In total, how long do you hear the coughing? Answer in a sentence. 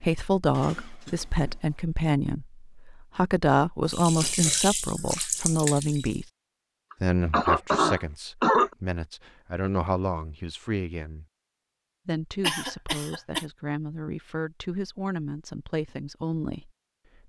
You can hear the coughing for 4 seconds altogether.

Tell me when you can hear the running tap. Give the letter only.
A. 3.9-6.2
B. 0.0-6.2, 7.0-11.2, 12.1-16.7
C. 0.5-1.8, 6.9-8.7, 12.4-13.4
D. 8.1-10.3
A.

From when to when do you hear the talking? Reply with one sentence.
You can hear the talking from 0.0 to 6.2 s, from 7.0 to 11.2 s and from 12.1 to 16.7 s.